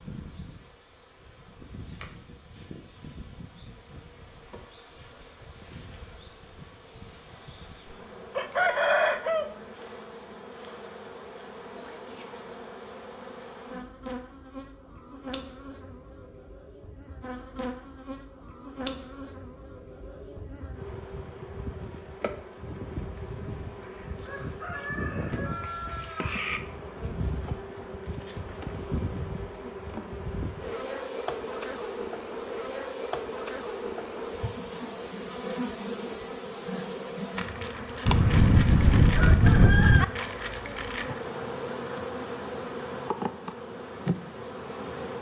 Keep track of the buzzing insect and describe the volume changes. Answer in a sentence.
The loudness of the buzzing insect goes up.